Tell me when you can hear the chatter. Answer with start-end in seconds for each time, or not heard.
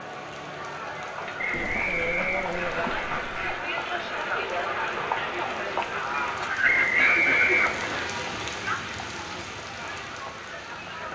0.0-11.1.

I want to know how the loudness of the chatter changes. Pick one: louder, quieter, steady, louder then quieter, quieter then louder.
louder then quieter.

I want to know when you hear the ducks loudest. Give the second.
7 s.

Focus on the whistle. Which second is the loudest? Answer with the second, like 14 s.
7 s.